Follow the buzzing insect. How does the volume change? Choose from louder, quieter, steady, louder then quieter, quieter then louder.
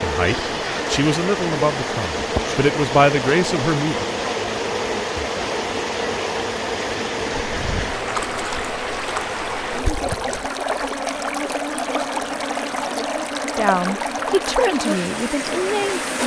steady.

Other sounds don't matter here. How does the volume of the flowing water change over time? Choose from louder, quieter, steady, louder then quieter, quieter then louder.
steady.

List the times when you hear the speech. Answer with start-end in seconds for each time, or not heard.
0.0-4.0, 13.6-16.1.